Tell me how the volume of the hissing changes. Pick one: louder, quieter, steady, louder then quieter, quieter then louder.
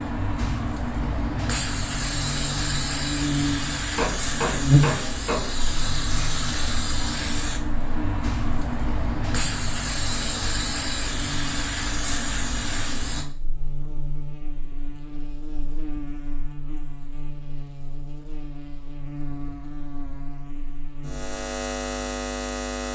steady.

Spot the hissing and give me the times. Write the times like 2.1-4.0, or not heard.
0.0-13.2.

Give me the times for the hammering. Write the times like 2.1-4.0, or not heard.
4.0-5.5.